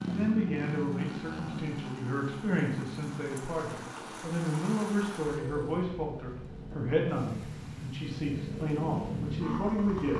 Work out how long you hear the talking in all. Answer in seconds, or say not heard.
10 s.